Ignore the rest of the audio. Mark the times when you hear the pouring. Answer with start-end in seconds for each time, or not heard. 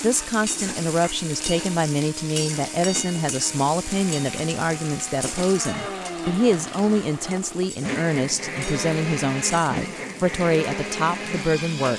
not heard.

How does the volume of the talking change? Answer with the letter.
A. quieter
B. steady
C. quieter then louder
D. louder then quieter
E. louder
B.